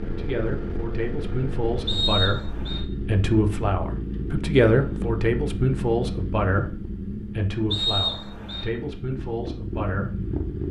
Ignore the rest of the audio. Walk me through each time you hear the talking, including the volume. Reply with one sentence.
The talking can be heard from 0.0 to 10.3 s, getting louder then quieter.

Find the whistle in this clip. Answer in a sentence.
The whistle can be heard from 1.9 to 2.8 s and from 7.7 to 8.7 s.